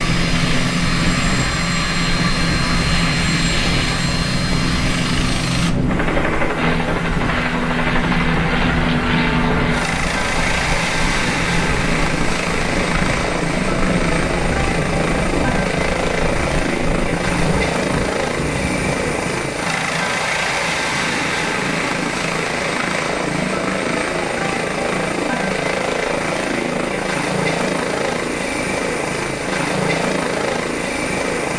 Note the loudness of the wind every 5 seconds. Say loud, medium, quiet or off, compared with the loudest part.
loud, loud, loud, loud, off, off, off.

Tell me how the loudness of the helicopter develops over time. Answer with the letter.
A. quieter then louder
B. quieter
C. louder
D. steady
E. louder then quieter
D.